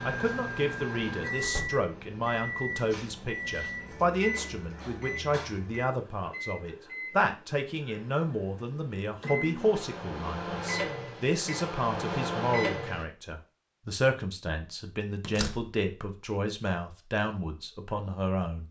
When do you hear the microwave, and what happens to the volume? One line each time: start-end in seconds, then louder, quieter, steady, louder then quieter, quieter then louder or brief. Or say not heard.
0.0-13.1 quieter then louder.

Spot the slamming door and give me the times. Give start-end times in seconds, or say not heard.
1.4-1.9, 15.2-15.6.